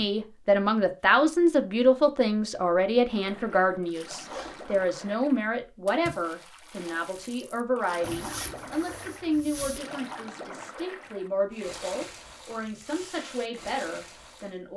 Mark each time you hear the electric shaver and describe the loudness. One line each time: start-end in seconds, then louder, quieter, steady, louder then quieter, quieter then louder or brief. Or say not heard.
not heard.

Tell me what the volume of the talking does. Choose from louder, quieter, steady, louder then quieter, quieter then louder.
quieter.